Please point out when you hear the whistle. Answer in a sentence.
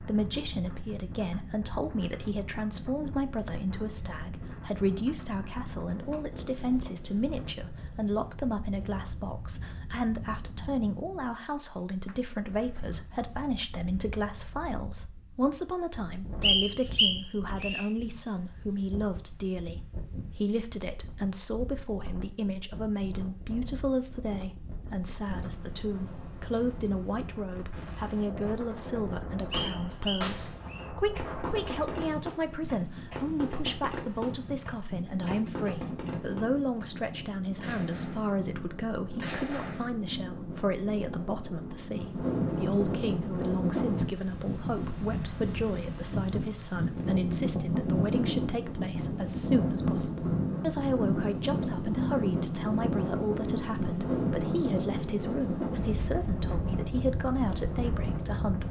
The whistle can be heard from 16.4 to 17.9 s and from 29.5 to 30.9 s.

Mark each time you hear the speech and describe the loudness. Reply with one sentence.
The speech can be heard from 0.0 to 58.6 s, at a steady volume.